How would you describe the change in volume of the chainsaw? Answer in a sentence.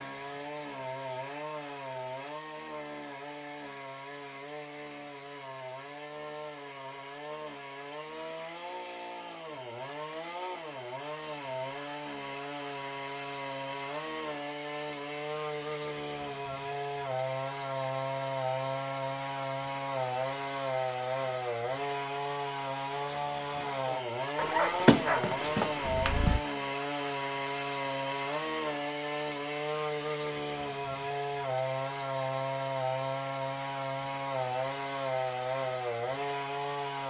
The loudness of the chainsaw goes up.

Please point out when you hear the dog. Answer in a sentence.
You can hear the dog from 24.4 to 26.4 s.